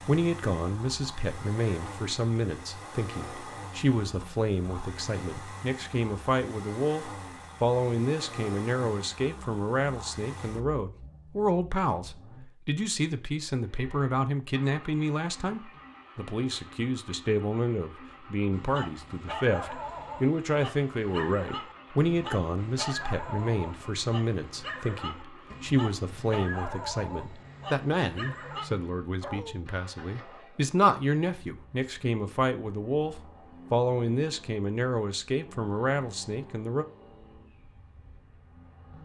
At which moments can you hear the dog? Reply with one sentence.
You can hear the dog from 18.5 to 29.6 s.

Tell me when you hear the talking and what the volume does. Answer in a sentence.
The talking can be heard from 0.1 to 36.9 s, at a steady volume.